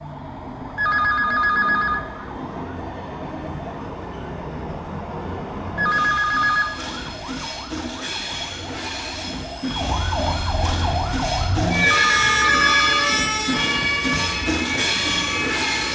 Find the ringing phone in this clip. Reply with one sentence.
You can hear the ringing phone from 0.8 to 2.0 s, from 5.8 to 6.7 s and from 11.8 to 13.1 s.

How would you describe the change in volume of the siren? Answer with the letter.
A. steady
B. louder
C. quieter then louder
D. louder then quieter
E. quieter
B.